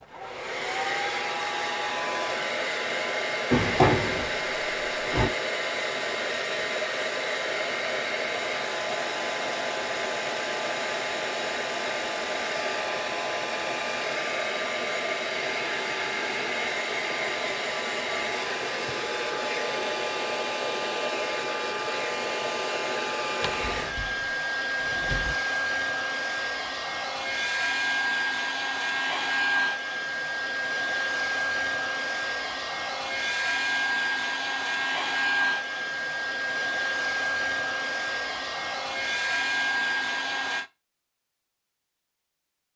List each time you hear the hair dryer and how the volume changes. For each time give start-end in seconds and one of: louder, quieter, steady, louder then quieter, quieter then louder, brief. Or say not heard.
0.0-40.7 steady.